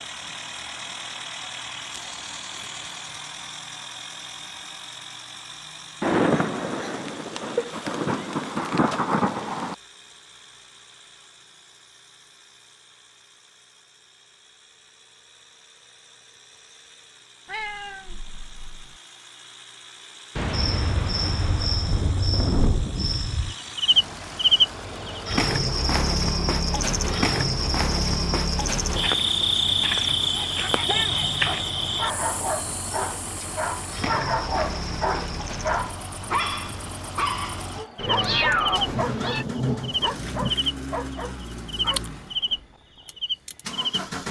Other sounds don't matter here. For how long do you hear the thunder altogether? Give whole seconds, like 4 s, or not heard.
9 s.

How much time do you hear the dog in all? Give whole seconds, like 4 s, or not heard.
12 s.